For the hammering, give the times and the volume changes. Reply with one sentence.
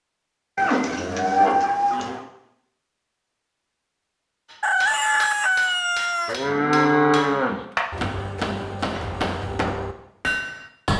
The hammering can be heard from 4.5 to 10.9 s, getting louder.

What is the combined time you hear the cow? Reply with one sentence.
The cow can be heard for 3 seconds in total.